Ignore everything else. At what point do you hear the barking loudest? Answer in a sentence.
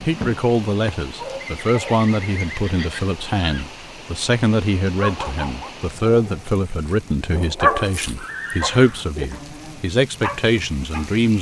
The volume of the barking peaks at 8 seconds.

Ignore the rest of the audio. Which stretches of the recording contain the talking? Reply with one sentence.
The talking can be heard from 0.0 to 11.3 s.